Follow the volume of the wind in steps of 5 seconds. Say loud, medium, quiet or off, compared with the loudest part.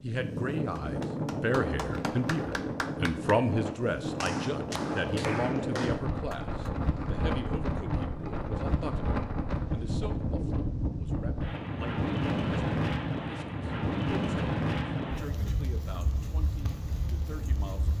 loud, loud, loud, medium.